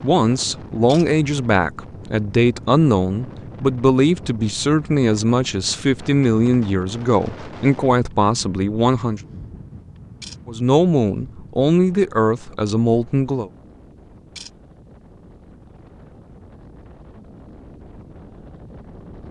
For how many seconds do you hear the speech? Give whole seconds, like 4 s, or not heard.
12 s.